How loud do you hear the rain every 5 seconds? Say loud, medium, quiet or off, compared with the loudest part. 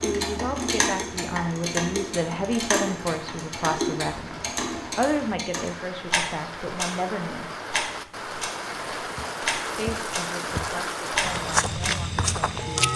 medium, loud, loud.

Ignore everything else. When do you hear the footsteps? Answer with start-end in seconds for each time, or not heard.
9.1-12.9.